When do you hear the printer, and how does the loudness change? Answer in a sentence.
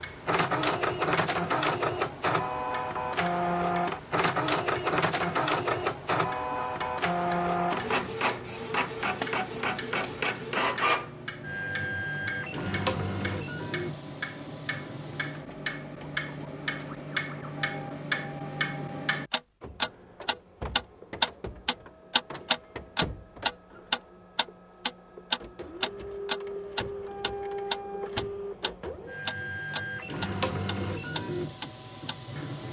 The printer can be heard from 0.0 to 32.6 s, getting quieter then louder.